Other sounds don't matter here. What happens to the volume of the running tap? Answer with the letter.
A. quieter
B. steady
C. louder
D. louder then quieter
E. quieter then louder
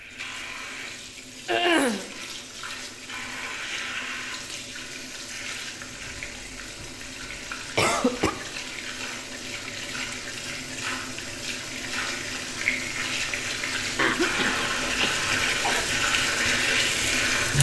C.